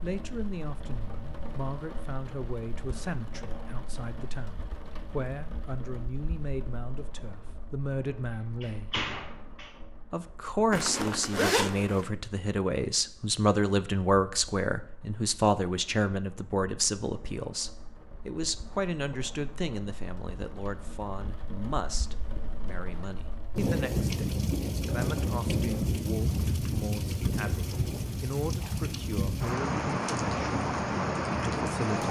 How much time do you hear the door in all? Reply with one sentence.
The door can be heard for 2 seconds in total.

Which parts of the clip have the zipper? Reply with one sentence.
You can hear the zipper from 10.7 to 12.1 s.